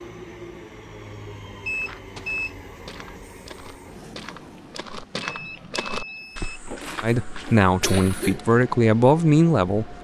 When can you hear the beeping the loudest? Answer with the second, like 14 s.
2 s.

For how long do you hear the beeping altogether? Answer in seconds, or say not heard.
2 s.